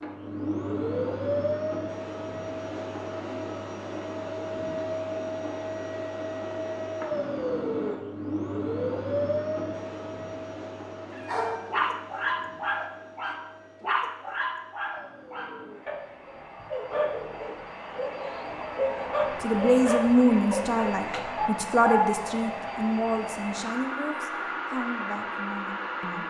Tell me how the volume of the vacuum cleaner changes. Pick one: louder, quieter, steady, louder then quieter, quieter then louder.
quieter then louder.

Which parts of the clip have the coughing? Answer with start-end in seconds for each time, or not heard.
not heard.